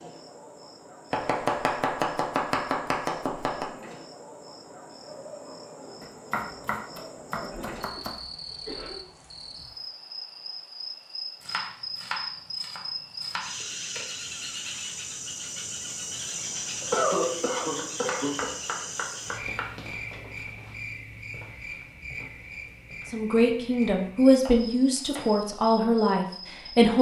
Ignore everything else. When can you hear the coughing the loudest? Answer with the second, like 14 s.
17 s.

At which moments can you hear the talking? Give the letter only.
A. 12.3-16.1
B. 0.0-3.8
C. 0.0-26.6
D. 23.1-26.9
D.